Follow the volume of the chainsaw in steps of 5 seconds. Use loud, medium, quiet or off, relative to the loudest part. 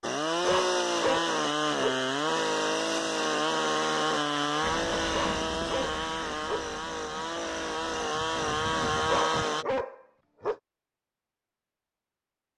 loud, loud, off.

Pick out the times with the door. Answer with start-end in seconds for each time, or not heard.
not heard.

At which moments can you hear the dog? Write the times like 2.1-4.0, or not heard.
0.5-2.0, 5.1-6.8, 8.9-10.6.